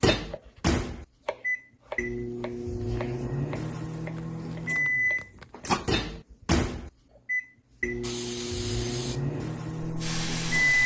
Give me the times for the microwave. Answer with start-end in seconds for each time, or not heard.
0.0-10.8.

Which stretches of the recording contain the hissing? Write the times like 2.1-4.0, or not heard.
8.0-10.8.